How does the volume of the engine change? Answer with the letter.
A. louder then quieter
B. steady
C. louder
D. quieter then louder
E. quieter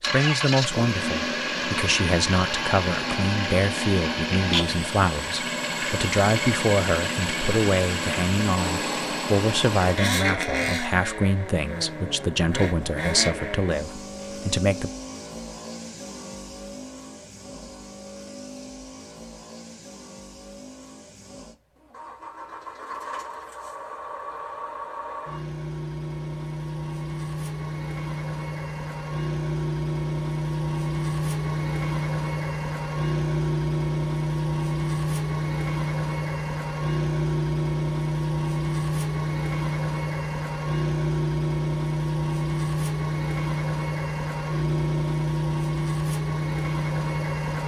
D.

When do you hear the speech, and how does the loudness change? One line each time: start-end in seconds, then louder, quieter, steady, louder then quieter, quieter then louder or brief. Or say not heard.
0.0-14.9 steady.